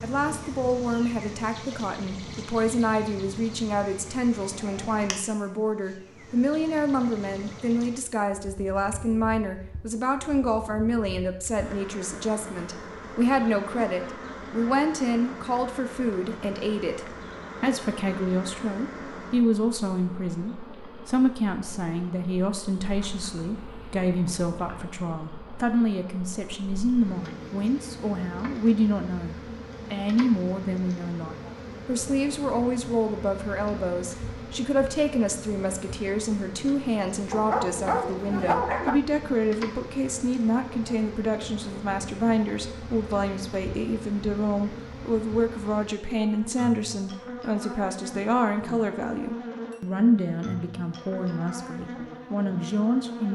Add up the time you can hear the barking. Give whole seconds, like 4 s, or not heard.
4 s.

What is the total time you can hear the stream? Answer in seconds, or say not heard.
not heard.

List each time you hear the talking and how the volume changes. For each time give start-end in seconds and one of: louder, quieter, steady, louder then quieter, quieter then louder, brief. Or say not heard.
0.0-53.2 steady.